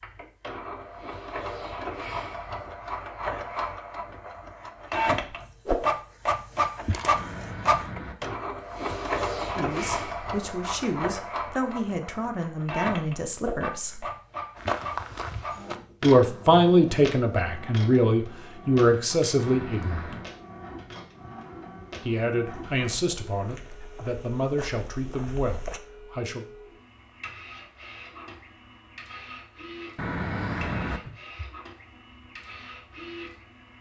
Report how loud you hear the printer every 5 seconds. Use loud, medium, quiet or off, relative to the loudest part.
medium, loud, medium, quiet, quiet, quiet, quiet.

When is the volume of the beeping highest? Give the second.
31 s.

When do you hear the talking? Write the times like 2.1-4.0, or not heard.
9.6-14.1, 16.0-20.1, 22.1-26.4.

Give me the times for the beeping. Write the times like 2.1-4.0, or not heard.
7.1-8.4, 19.4-20.3, 29.9-31.2.